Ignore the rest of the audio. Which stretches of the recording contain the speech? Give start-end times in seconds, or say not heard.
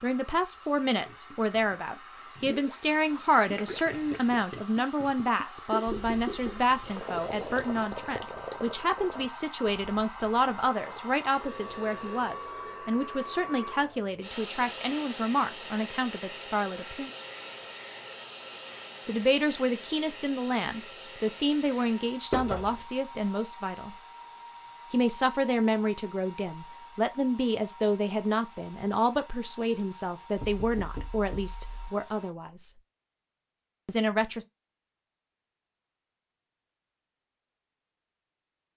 0.0-17.1, 19.1-23.9, 24.9-32.7, 33.9-34.5.